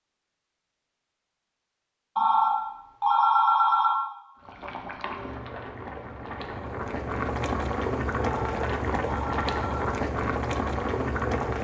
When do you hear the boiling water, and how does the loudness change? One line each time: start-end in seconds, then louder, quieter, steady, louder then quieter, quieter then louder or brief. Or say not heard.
4.3-11.5 louder.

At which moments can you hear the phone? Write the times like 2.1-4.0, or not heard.
2.1-4.0, 8.2-9.8.